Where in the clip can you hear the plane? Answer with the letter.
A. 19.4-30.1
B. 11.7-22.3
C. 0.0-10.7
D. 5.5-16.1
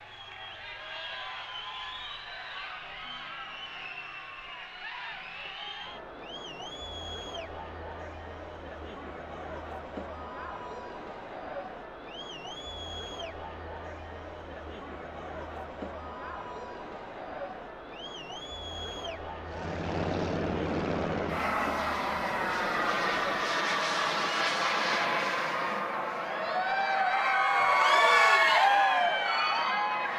A.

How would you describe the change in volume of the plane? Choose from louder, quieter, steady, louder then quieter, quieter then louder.
quieter.